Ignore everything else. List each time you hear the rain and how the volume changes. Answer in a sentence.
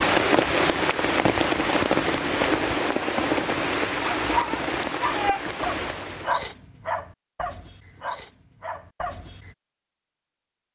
The rain can be heard from 0.0 to 6.4 s, getting quieter.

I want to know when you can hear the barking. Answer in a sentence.
You can hear the barking from 4.0 to 9.5 s.